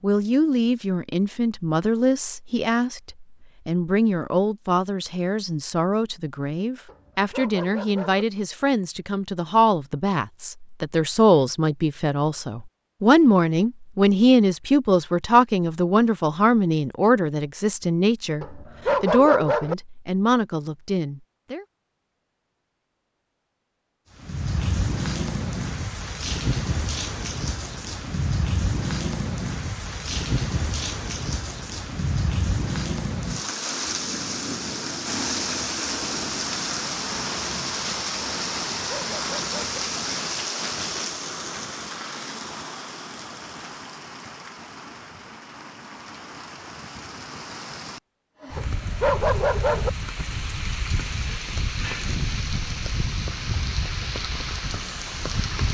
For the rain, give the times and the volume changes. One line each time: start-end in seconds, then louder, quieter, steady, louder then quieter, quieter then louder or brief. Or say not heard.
24.1-55.6 quieter then louder.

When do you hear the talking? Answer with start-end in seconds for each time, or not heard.
0.0-21.6.